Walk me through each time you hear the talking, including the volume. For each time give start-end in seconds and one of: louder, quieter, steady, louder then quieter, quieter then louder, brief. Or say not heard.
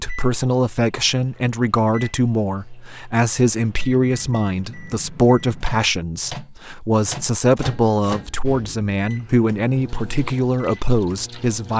0.0-11.7 steady.